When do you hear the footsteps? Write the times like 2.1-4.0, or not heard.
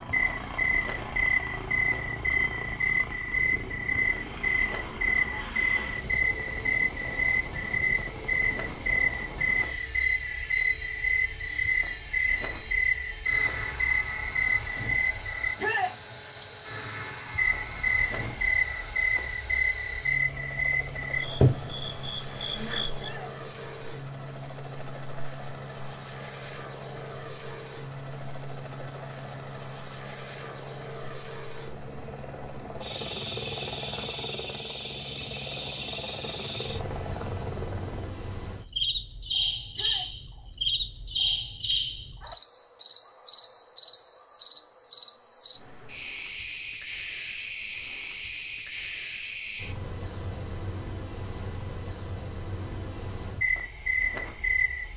not heard.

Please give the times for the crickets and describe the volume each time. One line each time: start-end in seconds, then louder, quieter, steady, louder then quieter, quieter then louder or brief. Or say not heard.
0.0-54.9 quieter then louder.